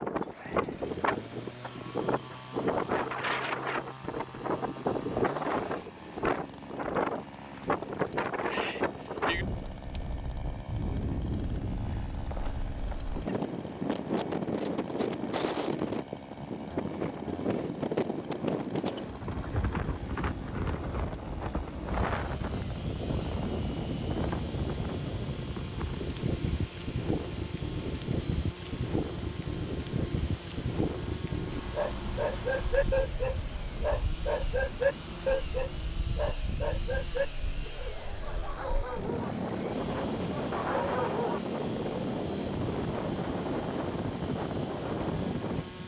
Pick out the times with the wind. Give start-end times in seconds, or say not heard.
0.0-45.8.